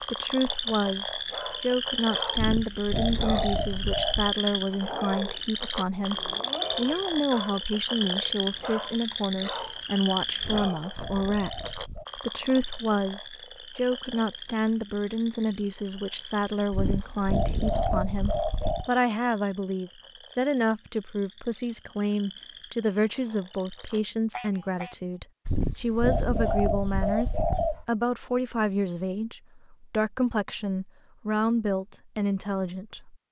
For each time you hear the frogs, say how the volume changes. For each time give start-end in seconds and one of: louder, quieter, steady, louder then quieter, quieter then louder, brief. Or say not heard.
0.0-24.9 quieter.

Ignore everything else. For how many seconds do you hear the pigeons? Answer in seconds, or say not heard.
8 s.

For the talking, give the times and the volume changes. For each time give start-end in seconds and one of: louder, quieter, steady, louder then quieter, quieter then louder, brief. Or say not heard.
0.0-33.1 steady.